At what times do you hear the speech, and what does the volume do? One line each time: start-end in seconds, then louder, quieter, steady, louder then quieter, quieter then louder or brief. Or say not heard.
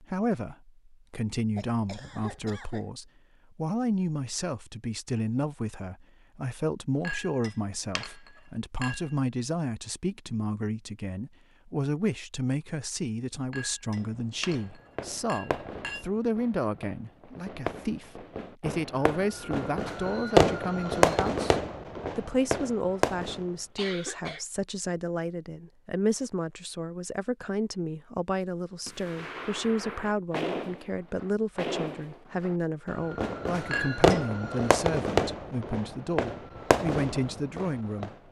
0.0-38.1 steady.